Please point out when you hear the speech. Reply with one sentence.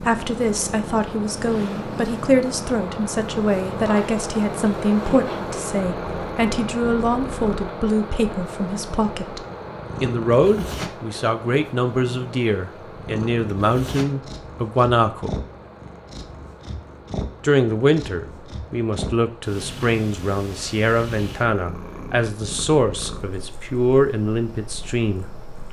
The speech can be heard from 0.0 to 9.4 s, from 10.0 to 15.3 s and from 17.4 to 25.2 s.